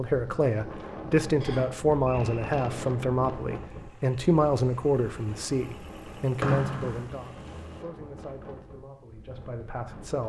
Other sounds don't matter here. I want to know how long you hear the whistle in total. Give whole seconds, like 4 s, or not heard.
2 s.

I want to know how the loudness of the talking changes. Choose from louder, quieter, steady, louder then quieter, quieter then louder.
quieter.